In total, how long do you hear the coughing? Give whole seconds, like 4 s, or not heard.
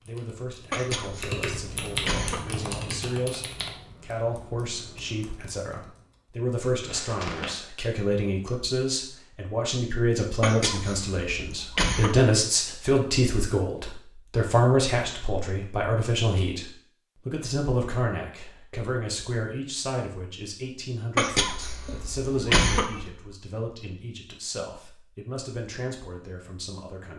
6 s.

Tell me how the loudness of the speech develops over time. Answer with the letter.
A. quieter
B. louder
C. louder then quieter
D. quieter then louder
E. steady
C.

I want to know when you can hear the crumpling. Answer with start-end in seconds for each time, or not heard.
6.8-7.5.